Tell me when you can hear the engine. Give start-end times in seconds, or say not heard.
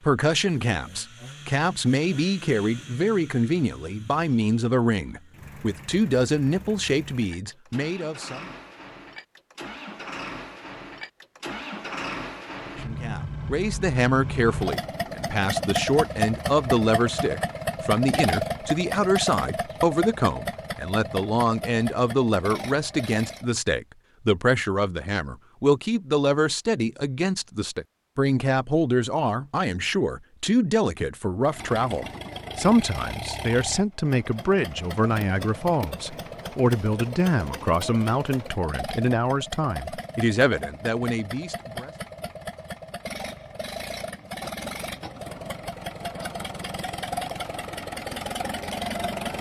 0.0-23.5, 31.4-49.3.